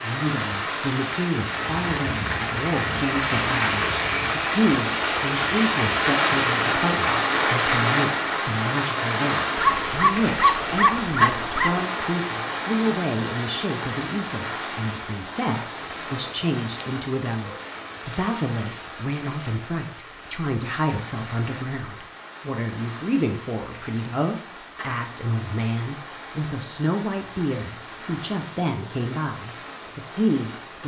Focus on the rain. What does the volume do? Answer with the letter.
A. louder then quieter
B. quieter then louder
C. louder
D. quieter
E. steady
D.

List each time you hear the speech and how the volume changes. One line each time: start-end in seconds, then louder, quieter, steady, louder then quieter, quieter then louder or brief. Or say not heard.
0.0-30.8 steady.